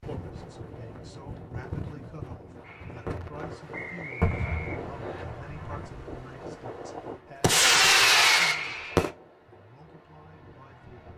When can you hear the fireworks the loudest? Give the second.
8 s.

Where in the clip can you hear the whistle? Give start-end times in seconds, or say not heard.
3.7-5.2.